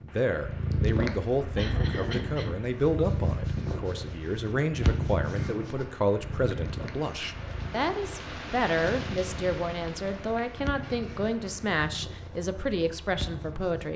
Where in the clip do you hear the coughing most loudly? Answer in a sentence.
The volume of the coughing peaks at 2 seconds.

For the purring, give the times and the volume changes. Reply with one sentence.
You can hear the purring from 0.3 to 13.9 s, getting quieter.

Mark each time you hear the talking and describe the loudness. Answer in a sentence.
You can hear the talking from 0.0 to 13.9 s, at a steady volume.